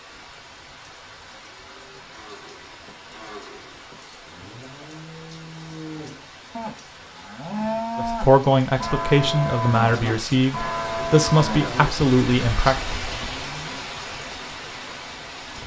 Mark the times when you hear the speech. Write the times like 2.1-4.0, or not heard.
8.0-12.8.